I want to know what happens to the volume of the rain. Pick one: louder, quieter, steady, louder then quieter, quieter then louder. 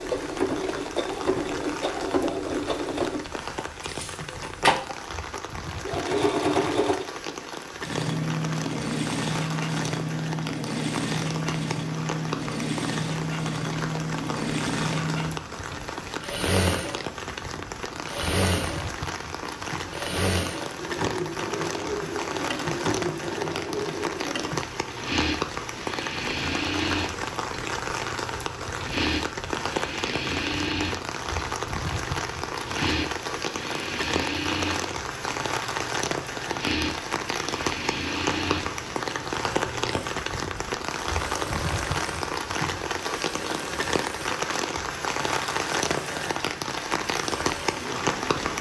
louder.